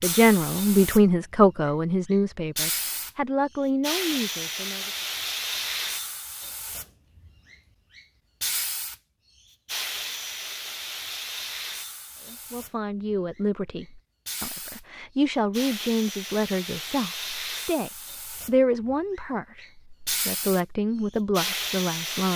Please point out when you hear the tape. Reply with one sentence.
You can't hear the tape here.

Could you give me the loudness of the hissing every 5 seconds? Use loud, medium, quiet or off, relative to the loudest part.
loud, loud, medium, medium, loud.